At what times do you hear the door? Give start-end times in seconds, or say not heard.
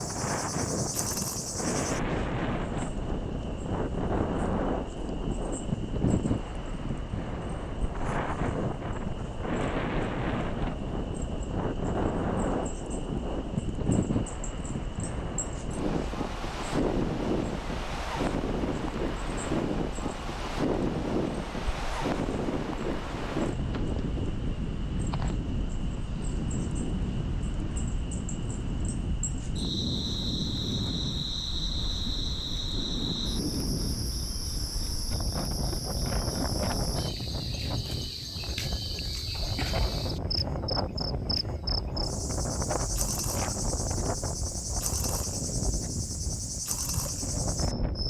not heard.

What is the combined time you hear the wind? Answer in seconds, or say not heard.
48 s.